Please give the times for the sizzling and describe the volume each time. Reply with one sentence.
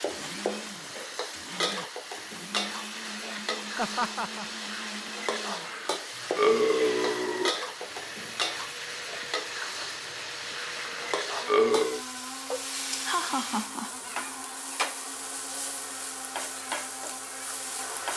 The sizzling can be heard from 0.0 to 18.1 s, at a steady volume.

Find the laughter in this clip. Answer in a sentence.
The laughter can be heard from 3.8 to 4.5 s and from 12.9 to 13.9 s.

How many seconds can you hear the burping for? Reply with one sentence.
You can hear the burping for 3 seconds altogether.